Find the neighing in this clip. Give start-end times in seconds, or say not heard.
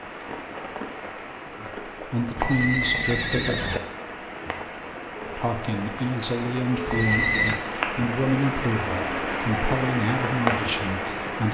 2.4-3.8, 6.8-7.6.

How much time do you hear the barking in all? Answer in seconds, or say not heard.
not heard.